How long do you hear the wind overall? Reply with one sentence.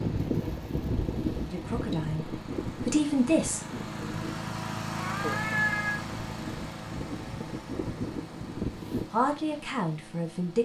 You can hear the wind for 9 seconds altogether.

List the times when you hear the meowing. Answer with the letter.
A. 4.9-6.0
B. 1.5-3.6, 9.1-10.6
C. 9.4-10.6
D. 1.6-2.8
A.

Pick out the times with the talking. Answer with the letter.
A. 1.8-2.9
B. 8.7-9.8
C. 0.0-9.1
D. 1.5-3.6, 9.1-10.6
D.